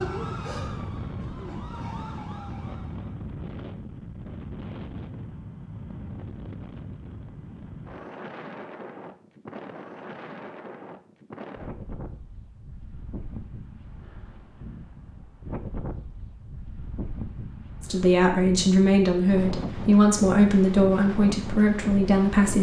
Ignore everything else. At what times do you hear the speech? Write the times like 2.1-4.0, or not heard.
17.8-22.5.